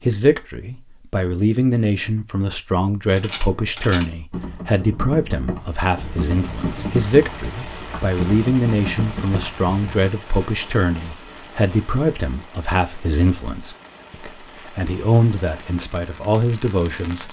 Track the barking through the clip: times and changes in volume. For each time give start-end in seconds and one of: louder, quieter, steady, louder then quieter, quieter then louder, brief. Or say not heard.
not heard.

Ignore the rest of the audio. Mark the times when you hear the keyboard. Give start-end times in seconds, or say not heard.
3.1-10.1.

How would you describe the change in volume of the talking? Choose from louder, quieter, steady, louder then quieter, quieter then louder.
steady.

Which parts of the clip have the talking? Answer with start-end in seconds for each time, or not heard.
0.1-17.2.